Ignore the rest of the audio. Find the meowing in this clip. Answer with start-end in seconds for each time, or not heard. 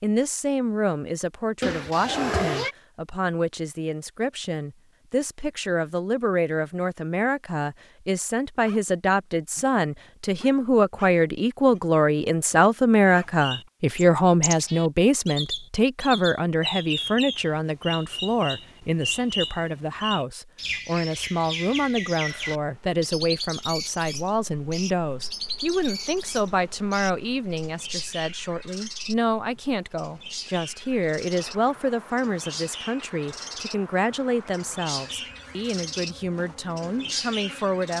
1.6-2.8.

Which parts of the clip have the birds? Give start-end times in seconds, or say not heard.
13.1-36.1, 36.8-37.9.